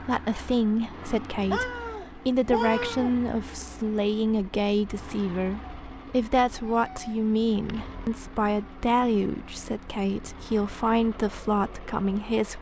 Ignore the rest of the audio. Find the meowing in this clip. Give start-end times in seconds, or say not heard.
1.5-3.1, 6.5-7.8.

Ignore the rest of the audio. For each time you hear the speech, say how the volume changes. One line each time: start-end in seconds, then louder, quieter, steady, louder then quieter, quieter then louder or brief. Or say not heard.
0.0-12.5 steady.